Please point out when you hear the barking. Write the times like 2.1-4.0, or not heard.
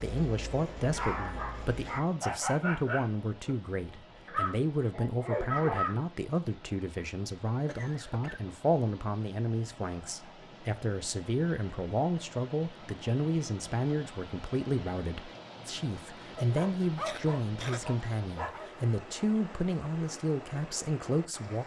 0.0-6.0, 16.2-18.9.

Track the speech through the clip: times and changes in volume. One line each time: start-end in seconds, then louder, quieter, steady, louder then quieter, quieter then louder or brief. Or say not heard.
0.0-21.6 steady.